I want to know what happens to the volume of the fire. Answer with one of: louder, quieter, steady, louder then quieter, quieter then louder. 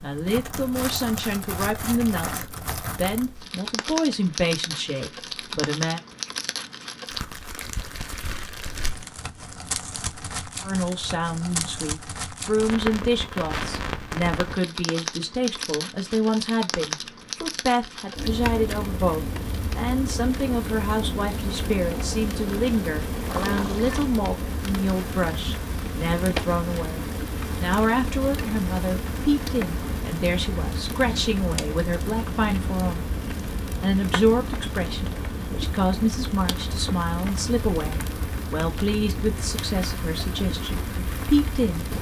steady.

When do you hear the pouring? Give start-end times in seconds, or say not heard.
23.2-24.1.